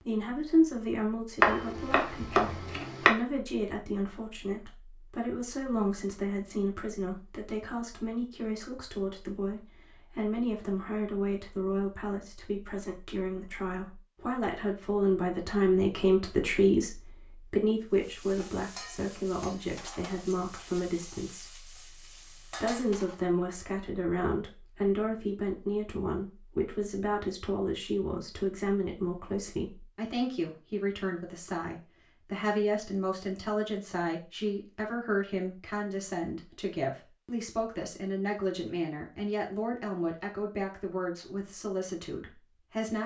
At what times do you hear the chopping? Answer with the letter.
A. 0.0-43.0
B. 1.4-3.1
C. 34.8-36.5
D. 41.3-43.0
B.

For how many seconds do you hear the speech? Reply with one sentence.
You can hear the speech for 43 seconds altogether.